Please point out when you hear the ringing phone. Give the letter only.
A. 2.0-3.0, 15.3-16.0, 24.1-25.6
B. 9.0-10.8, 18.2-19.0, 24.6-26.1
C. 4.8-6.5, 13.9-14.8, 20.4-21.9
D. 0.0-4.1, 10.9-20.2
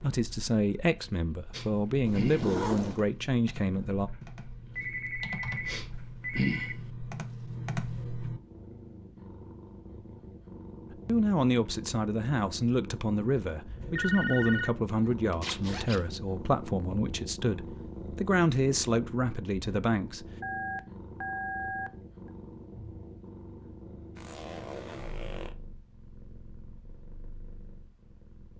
C.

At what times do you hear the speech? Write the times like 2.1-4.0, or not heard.
0.0-4.1, 10.9-20.2.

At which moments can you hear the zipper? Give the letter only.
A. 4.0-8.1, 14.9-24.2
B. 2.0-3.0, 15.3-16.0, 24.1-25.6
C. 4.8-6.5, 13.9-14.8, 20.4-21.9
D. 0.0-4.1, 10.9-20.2
B.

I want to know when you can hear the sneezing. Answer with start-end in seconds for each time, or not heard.
not heard.